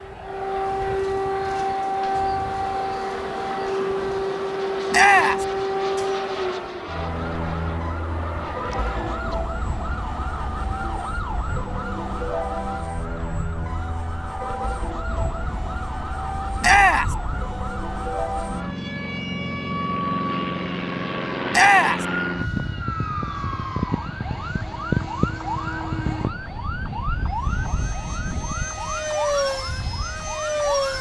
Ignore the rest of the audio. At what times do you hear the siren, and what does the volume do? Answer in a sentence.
The siren can be heard from 0.0 to 30.9 s, getting quieter.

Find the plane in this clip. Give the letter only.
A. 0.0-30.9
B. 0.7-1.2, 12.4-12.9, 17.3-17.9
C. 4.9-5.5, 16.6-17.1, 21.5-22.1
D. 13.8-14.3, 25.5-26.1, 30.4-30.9
A.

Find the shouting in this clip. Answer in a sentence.
You can hear the shouting from 4.9 to 5.5 s, from 16.6 to 17.1 s and from 21.5 to 22.1 s.